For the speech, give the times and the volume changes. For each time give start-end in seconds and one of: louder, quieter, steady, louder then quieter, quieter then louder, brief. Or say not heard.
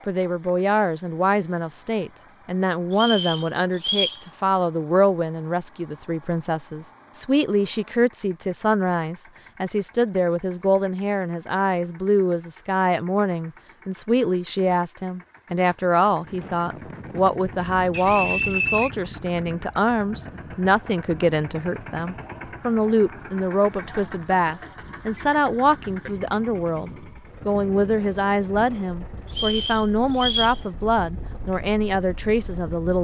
0.1-33.0 steady.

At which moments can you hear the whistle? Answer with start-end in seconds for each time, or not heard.
2.9-4.2, 17.9-18.9, 29.3-30.6.